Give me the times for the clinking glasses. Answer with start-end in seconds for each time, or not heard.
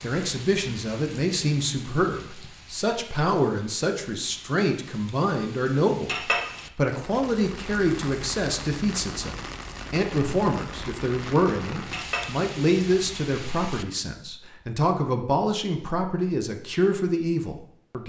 6.0-6.6, 11.9-12.4.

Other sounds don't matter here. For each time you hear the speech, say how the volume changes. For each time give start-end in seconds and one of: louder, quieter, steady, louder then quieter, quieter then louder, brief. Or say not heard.
0.0-18.0 steady.